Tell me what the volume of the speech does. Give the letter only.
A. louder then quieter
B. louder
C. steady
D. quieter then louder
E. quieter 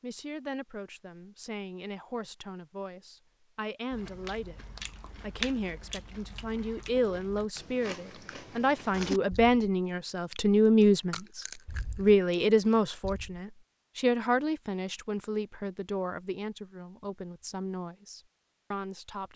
A.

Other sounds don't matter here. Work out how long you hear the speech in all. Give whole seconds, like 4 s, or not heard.
19 s.